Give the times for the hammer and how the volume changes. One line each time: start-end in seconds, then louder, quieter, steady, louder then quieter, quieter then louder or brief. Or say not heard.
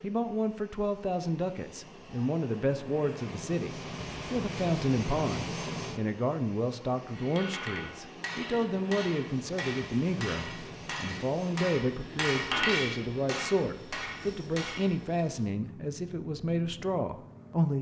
7.1-15.2 louder then quieter.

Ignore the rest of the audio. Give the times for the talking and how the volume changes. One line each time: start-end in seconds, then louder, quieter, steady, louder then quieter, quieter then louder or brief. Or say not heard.
0.0-17.7 steady.